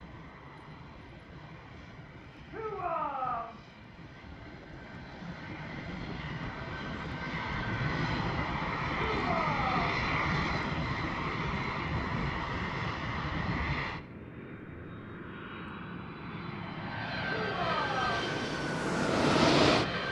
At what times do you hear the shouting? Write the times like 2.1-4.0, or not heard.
2.5-3.5, 9.0-9.9, 17.3-18.4.